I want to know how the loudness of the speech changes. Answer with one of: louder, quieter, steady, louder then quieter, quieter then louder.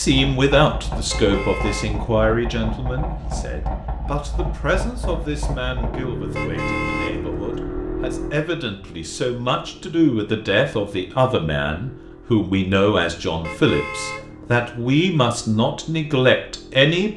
quieter then louder.